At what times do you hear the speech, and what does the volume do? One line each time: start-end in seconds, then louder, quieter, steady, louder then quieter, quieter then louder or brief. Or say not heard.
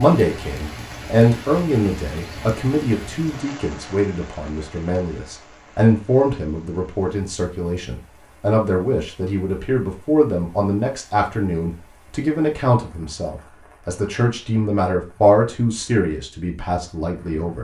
0.0-17.5 steady.